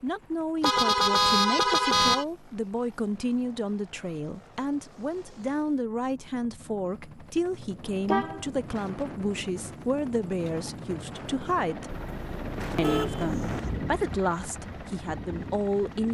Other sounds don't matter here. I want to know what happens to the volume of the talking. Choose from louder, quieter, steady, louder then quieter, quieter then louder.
steady.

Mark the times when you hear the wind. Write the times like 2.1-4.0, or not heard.
7.6-16.0.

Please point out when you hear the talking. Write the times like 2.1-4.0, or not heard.
0.0-12.0, 12.8-16.0.